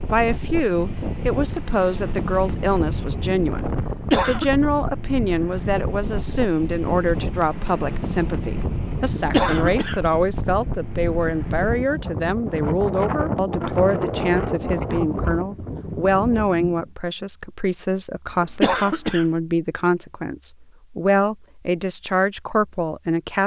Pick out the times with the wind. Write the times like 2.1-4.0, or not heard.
0.0-16.9.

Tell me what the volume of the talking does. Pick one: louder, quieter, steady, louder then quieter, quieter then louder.
steady.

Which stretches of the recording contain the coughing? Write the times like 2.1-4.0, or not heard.
3.8-4.5, 9.2-10.0, 18.3-19.2.